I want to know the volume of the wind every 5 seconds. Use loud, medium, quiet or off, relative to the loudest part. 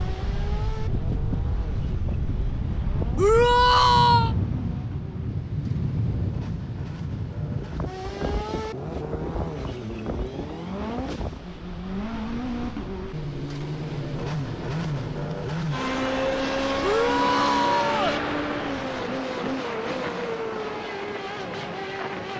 loud, loud, medium, medium, medium.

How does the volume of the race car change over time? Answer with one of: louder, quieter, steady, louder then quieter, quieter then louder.
louder.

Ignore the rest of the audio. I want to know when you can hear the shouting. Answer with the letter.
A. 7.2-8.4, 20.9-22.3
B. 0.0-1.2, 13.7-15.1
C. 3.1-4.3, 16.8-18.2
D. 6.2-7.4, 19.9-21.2
C.